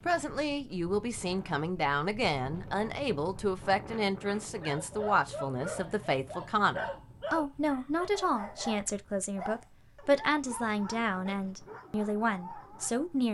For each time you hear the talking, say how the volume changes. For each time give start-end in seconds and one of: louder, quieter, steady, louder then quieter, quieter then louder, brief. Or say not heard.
0.1-13.2 steady.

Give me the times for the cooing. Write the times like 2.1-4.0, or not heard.
not heard.